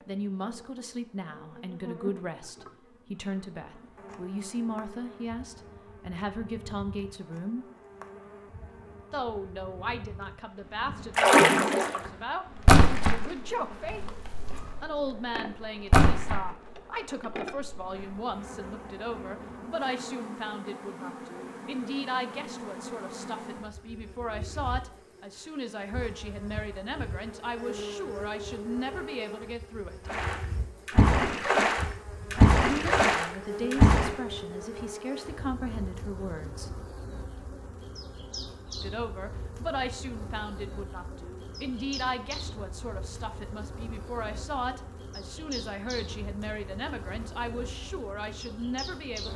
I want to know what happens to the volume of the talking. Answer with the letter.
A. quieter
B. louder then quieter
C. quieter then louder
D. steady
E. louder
D.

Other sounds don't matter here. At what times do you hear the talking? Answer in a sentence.
You can hear the talking from 0.1 to 7.7 s, from 9.1 to 14.1 s, from 14.8 to 30.1 s, from 32.7 to 36.8 s and from 38.8 to 49.3 s.